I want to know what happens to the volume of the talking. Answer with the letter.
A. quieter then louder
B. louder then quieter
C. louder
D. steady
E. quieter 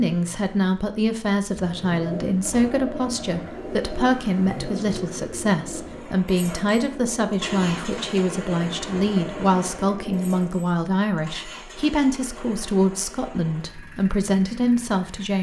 D.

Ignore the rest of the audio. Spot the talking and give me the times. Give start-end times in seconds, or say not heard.
0.0-15.3.